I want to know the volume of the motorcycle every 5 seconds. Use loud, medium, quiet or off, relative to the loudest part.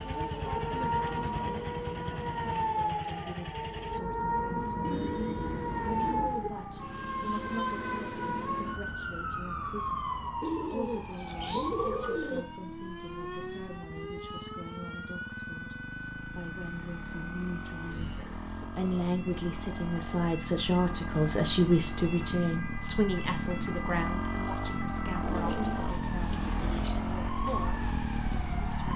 medium, quiet, quiet, medium, loud, loud.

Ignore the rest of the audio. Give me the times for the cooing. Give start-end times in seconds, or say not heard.
4.8-6.5, 10.4-12.4, 25.2-27.1.